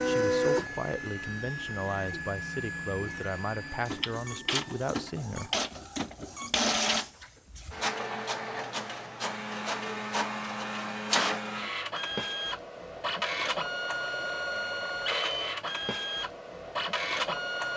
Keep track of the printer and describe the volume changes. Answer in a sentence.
The loudness of the printer stays about the same.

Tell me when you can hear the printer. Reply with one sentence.
The printer can be heard from 0.0 to 17.7 s.